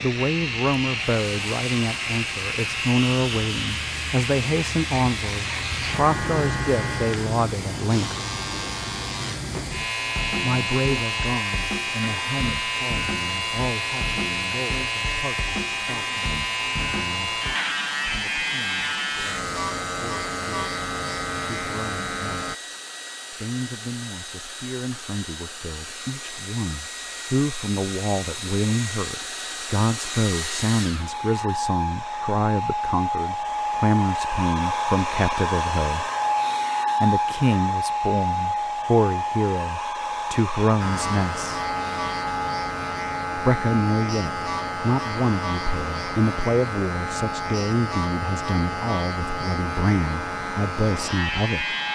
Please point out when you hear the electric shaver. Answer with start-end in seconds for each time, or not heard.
0.0-22.6, 40.8-51.8.